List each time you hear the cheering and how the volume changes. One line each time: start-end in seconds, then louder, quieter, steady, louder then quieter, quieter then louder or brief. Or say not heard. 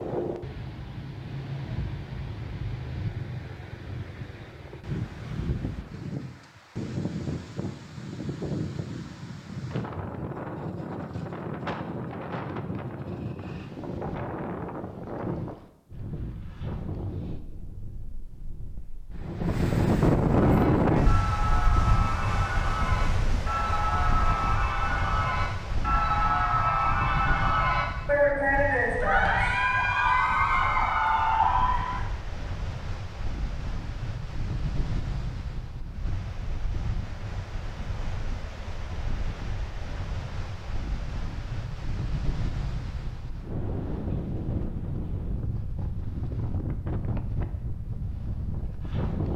20.4-32.0 louder.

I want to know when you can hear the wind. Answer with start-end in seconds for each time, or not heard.
0.0-49.3.